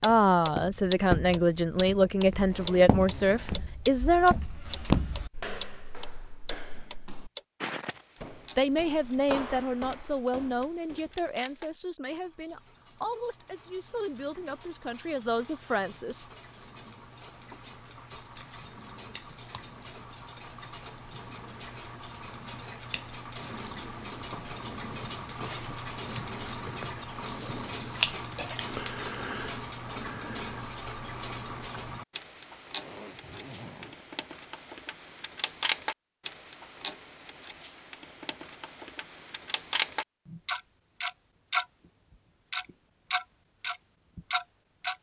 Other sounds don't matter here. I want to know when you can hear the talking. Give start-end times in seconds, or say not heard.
0.0-4.3, 8.6-16.3.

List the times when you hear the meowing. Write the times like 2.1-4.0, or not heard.
not heard.